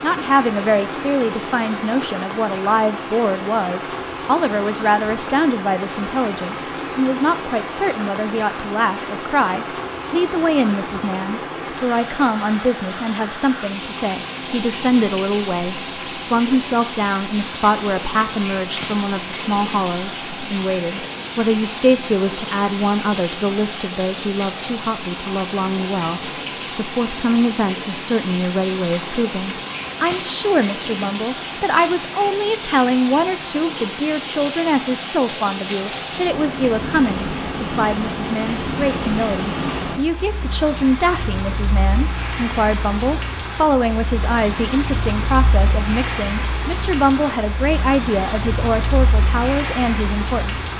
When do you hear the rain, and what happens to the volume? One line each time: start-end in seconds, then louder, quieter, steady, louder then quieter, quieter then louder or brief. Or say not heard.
0.0-50.7 steady.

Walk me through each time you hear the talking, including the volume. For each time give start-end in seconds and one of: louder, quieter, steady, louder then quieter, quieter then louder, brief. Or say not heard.
0.0-50.7 steady.